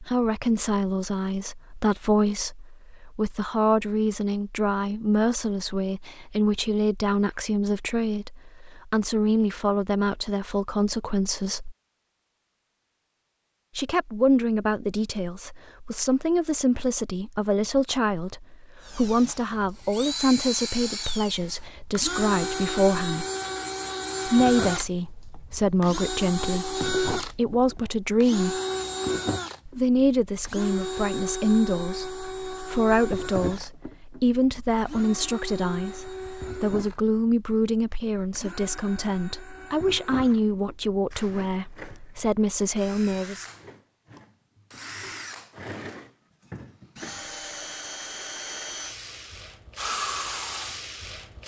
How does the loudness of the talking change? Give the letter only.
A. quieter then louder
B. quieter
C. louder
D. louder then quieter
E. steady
E.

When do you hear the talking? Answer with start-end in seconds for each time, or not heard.
0.0-11.8, 13.8-23.2, 24.2-28.6, 29.6-43.5.